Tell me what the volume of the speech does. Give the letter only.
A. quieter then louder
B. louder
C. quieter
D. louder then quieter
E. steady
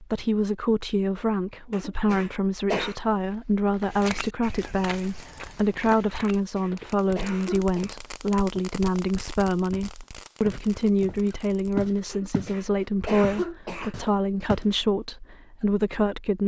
E.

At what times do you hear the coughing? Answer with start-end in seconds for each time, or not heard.
1.7-3.0, 6.3-8.0, 12.1-13.9.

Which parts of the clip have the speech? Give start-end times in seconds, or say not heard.
0.0-16.4.